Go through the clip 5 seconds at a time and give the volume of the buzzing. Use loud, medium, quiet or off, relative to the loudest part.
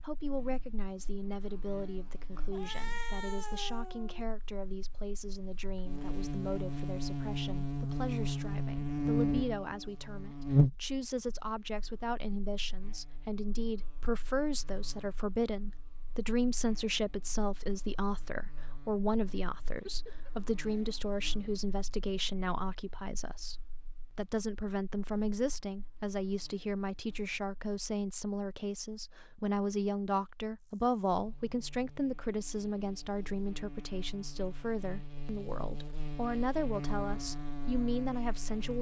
quiet, loud, loud, quiet, quiet, quiet, quiet, medium.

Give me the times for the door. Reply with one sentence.
You can't hear the door here.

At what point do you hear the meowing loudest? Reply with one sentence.
The volume of the meowing peaks at 3 seconds.